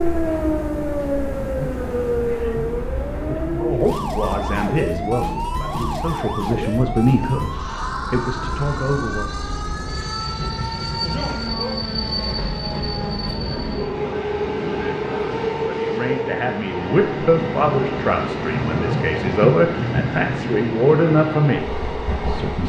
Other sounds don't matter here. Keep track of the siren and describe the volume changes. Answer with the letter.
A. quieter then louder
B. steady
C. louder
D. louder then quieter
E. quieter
E.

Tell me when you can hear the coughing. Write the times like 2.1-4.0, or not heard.
not heard.